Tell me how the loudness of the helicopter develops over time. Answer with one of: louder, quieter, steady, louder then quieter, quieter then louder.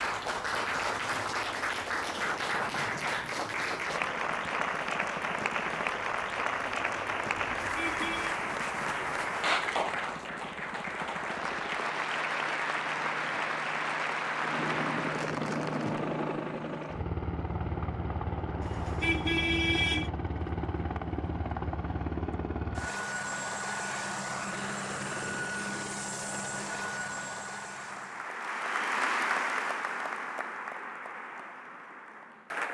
louder.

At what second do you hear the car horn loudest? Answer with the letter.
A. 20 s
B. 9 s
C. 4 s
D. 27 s
A.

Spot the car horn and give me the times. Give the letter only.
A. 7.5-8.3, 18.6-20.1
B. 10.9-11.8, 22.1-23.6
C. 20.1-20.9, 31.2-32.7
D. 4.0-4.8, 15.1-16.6
A.